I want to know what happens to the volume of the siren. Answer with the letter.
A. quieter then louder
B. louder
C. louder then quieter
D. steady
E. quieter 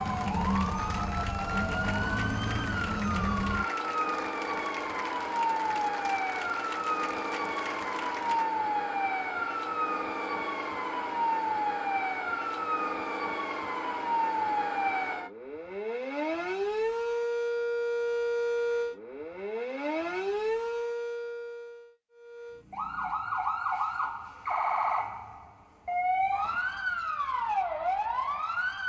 D.